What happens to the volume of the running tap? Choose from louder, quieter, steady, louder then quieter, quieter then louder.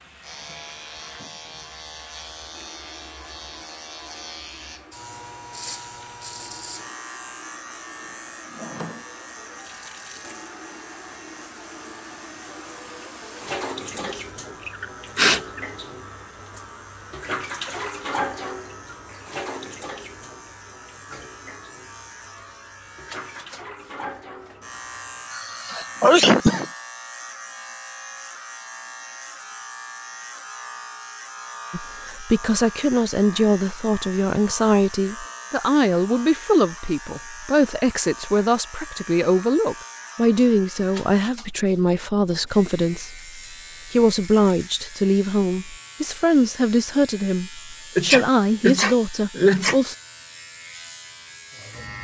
louder then quieter.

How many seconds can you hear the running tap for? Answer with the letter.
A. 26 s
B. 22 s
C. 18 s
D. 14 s
A.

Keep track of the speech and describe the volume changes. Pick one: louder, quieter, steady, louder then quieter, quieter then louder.
steady.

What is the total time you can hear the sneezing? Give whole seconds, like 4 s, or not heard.
5 s.